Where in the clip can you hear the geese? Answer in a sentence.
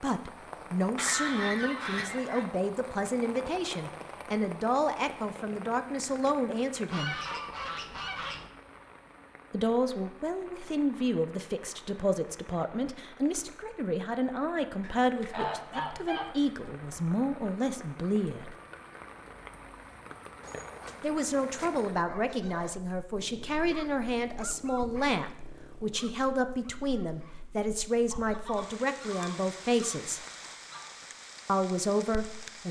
The geese can be heard from 0.9 to 2.5 s, from 6.9 to 8.5 s, from 14.8 to 17.0 s, from 20.4 to 22.7 s and from 28.1 to 31.0 s.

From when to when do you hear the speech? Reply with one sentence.
You can hear the speech from 0.0 to 7.2 s, from 9.5 to 18.6 s, from 21.0 to 30.2 s and from 31.4 to 32.6 s.